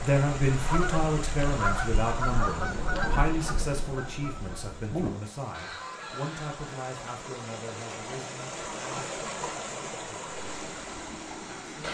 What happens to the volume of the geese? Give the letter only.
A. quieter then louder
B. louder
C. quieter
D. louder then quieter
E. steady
C.